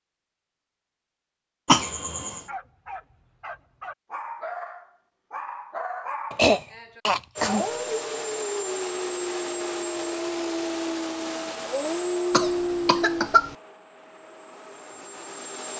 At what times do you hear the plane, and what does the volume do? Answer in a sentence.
The plane can be heard from 7.3 to 15.7 s, getting quieter.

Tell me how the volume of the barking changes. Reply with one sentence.
The volume of the barking goes up.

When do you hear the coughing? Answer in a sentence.
You can hear the coughing from 1.6 to 2.4 s, from 6.3 to 7.7 s and from 12.3 to 13.6 s.